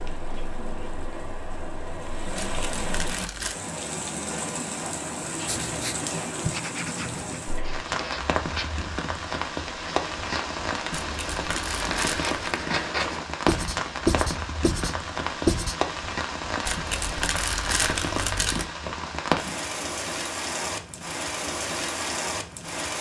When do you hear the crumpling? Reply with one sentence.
You can hear the crumpling from 2.4 to 3.5 s, from 11.0 to 12.3 s and from 16.6 to 18.6 s.